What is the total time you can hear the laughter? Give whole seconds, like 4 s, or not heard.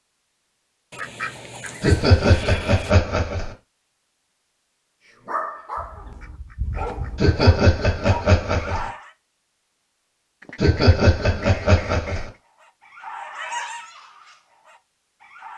5 s.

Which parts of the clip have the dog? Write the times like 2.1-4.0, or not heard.
5.0-9.1, 12.2-15.5.